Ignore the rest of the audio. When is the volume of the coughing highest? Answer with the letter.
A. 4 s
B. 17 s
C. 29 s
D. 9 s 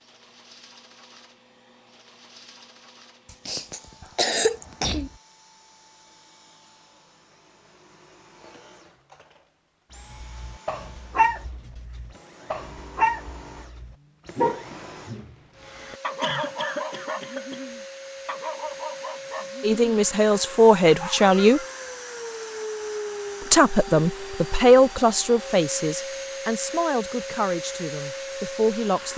A.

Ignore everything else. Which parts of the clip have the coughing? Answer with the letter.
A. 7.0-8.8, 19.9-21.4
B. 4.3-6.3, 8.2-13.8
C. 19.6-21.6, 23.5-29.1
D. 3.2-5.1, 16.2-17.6
D.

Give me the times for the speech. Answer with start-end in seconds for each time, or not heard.
19.6-21.6, 23.5-29.1.